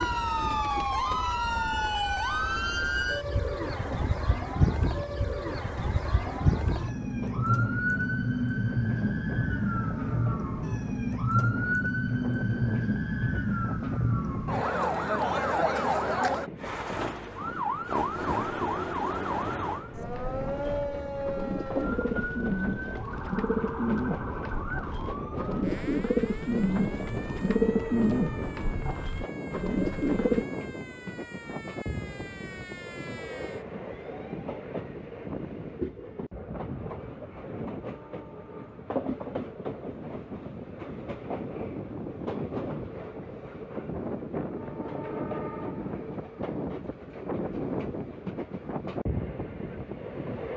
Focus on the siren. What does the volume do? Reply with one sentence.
The loudness of the siren goes down.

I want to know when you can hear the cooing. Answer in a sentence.
The cooing can be heard from 0.0 to 1.8 s and from 19.9 to 30.4 s.